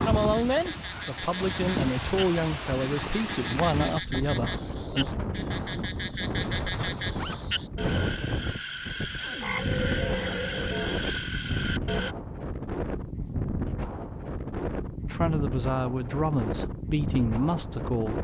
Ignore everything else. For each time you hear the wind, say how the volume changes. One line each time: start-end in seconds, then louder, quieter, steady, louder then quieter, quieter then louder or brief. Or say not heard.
0.0-18.2 steady.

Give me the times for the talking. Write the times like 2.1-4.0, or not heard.
0.0-5.0, 15.1-18.2.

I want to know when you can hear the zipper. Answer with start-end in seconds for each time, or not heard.
7.1-8.0.